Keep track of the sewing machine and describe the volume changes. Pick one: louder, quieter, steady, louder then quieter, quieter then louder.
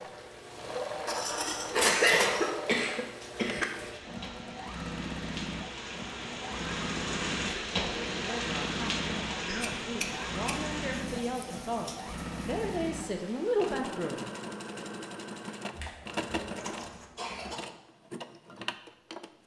steady.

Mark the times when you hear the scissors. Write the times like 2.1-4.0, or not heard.
1.1-2.5, 9.6-10.7, 16.6-17.2.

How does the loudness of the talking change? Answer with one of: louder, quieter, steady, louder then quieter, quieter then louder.
louder.